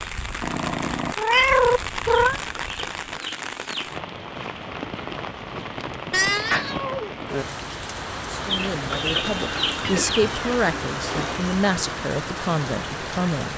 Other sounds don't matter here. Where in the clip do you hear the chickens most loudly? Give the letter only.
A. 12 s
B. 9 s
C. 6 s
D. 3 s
B.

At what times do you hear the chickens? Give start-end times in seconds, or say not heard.
2.4-3.9, 8.4-10.2.